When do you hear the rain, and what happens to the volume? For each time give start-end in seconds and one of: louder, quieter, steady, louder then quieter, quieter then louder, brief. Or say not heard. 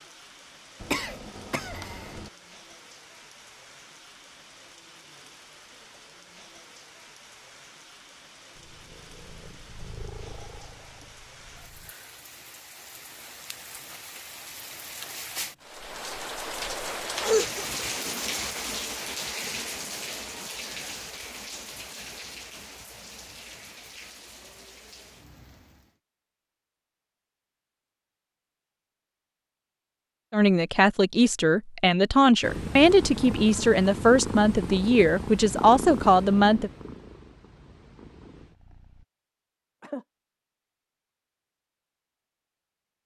0.0-26.0 louder then quieter.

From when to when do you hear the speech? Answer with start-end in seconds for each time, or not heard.
30.3-36.7.